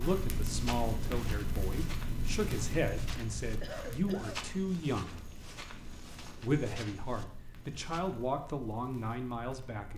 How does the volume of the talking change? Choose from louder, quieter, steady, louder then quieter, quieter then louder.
steady.